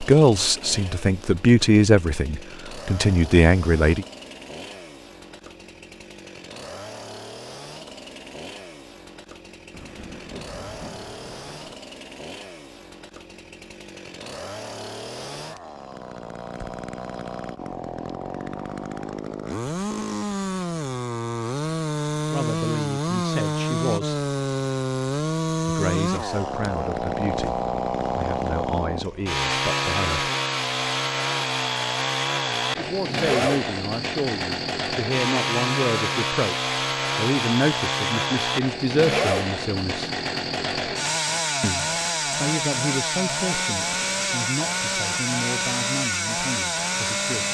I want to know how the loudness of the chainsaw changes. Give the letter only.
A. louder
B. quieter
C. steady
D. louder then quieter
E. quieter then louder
A.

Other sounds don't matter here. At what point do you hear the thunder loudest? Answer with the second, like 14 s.
10 s.